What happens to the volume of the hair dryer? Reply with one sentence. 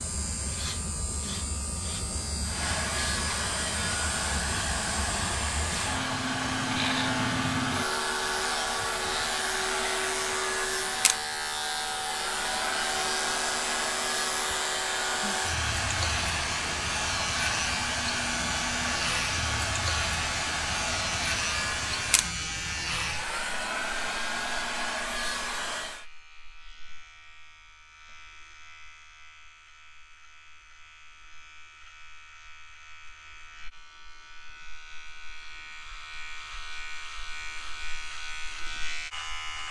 The volume of the hair dryer stays about the same.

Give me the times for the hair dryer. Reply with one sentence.
You can hear the hair dryer from 2.4 to 26.1 s.